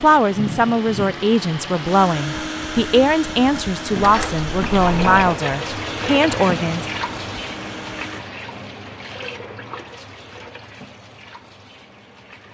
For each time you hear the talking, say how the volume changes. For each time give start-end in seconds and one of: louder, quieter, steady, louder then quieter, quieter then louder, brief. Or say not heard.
0.0-6.8 steady.